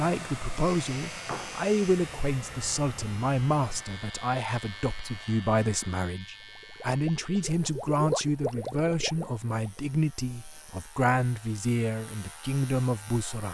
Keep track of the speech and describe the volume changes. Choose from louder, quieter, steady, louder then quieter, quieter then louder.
steady.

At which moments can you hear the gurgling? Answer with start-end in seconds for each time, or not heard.
6.4-9.8.